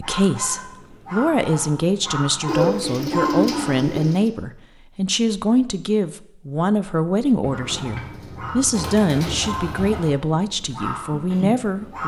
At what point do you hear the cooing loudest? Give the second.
3 s.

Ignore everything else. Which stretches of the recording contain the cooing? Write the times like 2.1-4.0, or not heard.
2.5-4.3, 7.4-10.2.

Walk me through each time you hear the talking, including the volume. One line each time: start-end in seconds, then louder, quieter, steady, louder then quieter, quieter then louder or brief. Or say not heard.
0.0-12.0 steady.